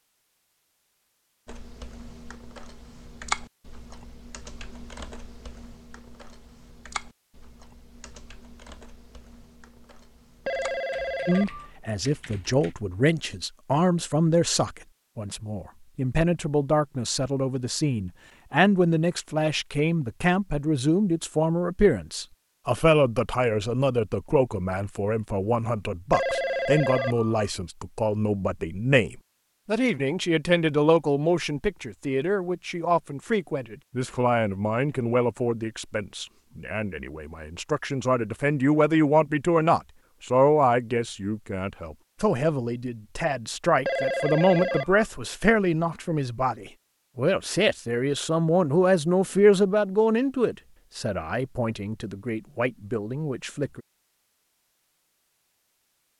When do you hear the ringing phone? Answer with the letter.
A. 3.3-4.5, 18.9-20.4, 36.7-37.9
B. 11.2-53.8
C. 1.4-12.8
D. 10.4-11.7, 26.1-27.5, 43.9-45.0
D.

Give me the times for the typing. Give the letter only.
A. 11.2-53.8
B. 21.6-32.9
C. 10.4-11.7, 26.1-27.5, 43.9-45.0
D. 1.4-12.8
D.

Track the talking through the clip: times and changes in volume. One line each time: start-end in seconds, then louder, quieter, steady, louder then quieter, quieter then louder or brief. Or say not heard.
11.2-53.8 steady.